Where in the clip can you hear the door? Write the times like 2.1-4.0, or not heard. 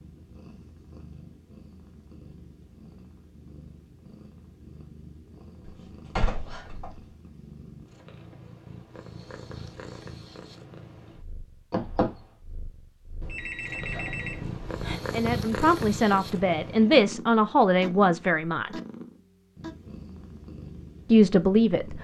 5.7-7.0, 11.7-12.1.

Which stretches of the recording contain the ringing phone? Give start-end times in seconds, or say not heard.
13.2-15.0.